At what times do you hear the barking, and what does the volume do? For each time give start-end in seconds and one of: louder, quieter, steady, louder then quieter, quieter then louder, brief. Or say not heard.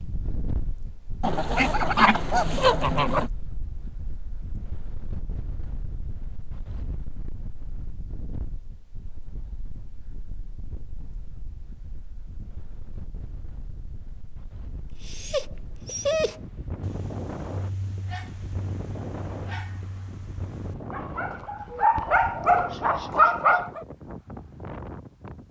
15.0-23.8 quieter then louder.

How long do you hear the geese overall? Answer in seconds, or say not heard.
2 s.